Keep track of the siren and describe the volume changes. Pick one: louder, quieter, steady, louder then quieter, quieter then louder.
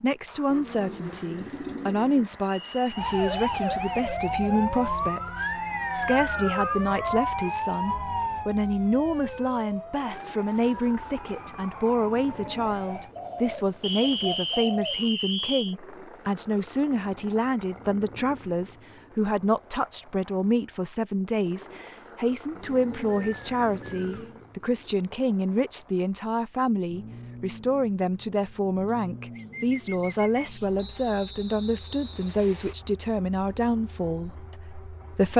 quieter.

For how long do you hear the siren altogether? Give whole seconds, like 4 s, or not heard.
10 s.